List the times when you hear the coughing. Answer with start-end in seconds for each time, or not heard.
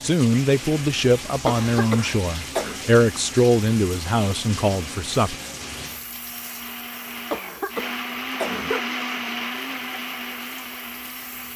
1.4-2.8, 7.3-8.8.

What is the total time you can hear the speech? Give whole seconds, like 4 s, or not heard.
5 s.